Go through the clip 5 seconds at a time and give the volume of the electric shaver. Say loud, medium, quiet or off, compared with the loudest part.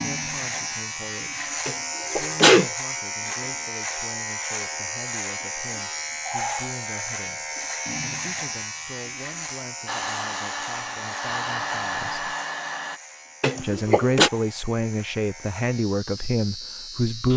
loud, loud, medium, medium.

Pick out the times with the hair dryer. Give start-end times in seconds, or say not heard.
9.8-13.0.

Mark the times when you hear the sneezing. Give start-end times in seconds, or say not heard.
1.6-2.7, 13.4-14.3.